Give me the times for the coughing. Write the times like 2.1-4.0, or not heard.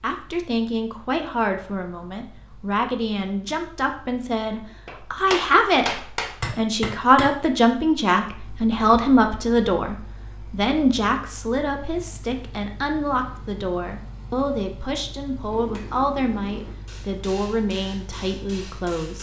not heard.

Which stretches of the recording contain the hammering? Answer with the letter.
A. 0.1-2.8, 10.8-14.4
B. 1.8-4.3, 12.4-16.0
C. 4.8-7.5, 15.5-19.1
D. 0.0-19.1
C.